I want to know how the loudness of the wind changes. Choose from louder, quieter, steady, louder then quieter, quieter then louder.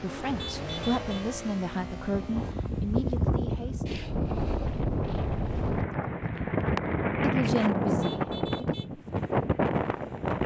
louder.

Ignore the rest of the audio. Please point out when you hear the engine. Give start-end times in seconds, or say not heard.
0.0-3.2.